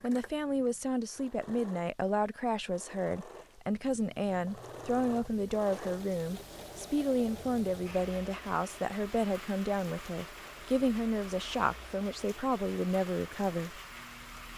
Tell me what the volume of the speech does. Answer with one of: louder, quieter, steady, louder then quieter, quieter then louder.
steady.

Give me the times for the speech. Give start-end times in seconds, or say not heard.
0.0-13.8.